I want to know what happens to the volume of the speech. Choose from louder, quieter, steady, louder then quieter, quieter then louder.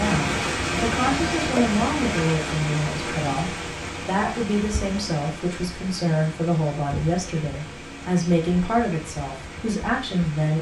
steady.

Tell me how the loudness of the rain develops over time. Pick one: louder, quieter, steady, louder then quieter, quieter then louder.
quieter.